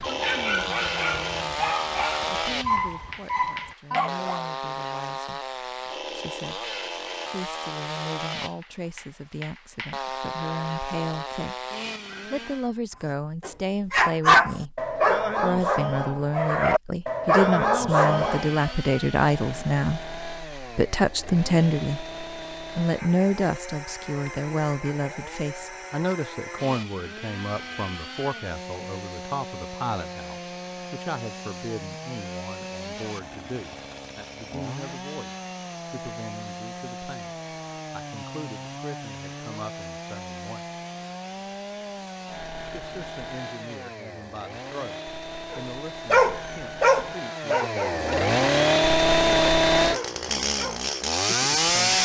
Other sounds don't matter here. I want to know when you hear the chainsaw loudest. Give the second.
49 s.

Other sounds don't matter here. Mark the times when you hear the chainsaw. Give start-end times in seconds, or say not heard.
0.0-12.7, 18.0-52.0.